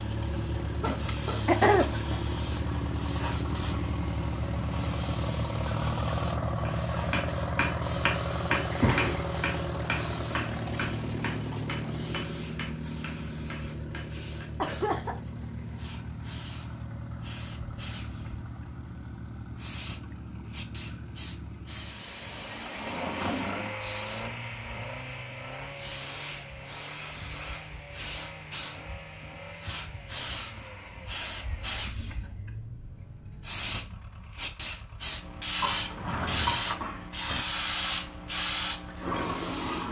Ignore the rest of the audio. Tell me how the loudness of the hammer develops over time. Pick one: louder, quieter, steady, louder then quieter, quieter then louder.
quieter.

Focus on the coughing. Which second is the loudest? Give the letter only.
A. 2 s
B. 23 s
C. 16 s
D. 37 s
A.